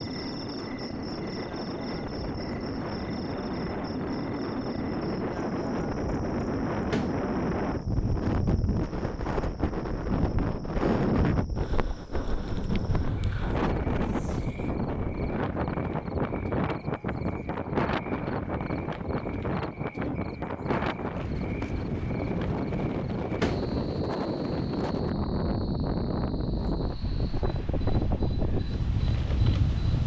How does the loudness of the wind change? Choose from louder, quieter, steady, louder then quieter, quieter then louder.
steady.